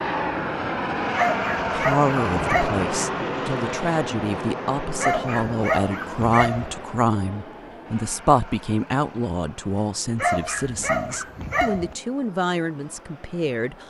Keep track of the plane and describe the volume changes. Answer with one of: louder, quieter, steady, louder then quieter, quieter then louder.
quieter.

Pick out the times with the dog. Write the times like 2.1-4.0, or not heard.
1.1-2.9, 5.0-6.8, 10.2-11.9.